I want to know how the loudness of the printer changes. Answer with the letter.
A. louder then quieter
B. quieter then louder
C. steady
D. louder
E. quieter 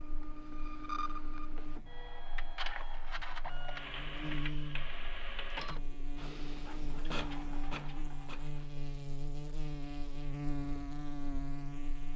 C.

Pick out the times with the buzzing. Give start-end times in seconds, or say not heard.
0.0-12.1.